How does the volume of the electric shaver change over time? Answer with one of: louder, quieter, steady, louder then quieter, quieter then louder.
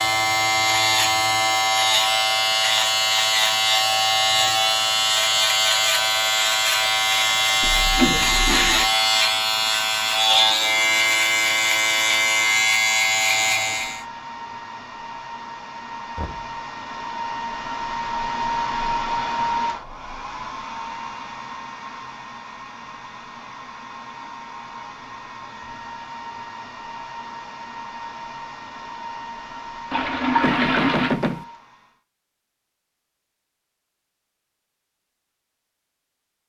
steady.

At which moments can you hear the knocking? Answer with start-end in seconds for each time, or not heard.
16.1-16.6, 30.4-31.4.